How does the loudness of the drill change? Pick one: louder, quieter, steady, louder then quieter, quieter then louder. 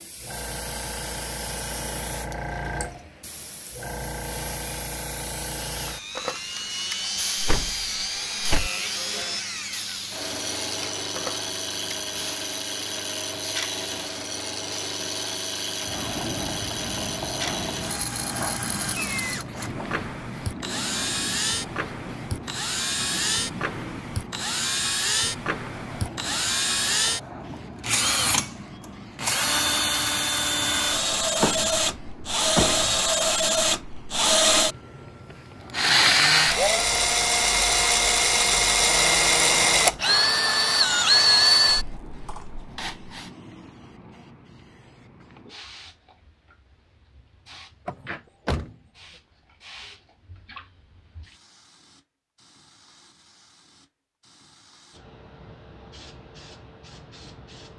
louder.